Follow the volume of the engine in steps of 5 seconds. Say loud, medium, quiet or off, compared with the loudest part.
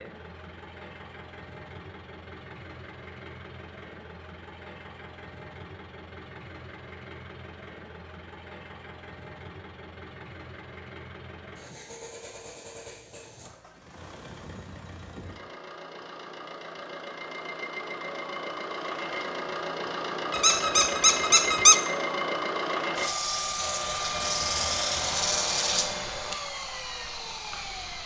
quiet, quiet, quiet, medium, loud, loud.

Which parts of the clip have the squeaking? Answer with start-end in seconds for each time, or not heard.
20.3-21.8.